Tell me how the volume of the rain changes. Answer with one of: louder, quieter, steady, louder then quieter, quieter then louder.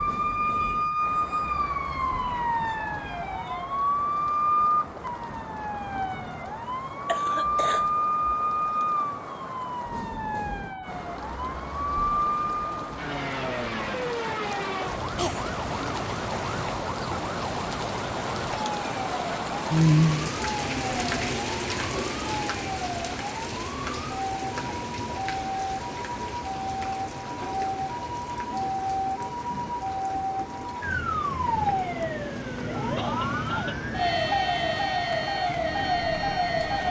louder then quieter.